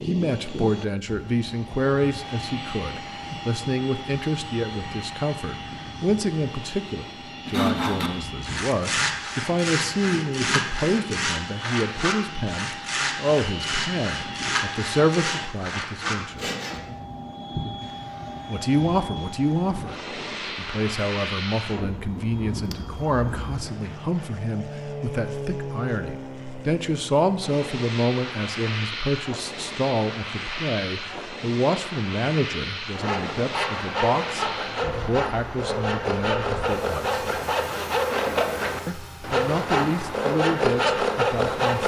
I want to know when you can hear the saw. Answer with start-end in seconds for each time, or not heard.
7.5-16.8, 32.9-41.8.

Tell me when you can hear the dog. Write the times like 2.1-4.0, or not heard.
not heard.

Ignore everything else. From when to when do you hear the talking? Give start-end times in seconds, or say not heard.
0.0-16.5, 18.4-37.2, 38.9-41.8.